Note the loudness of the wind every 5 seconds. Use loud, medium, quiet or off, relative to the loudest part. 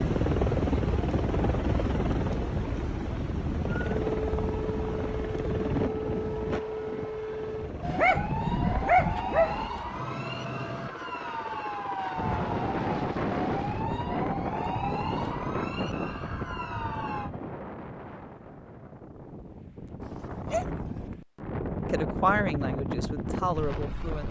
off, off, loud, medium, loud.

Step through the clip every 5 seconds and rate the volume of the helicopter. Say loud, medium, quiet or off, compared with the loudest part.
loud, medium, medium, quiet, off.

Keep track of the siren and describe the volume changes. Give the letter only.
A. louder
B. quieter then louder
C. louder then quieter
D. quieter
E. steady
E.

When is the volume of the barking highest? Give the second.
9 s.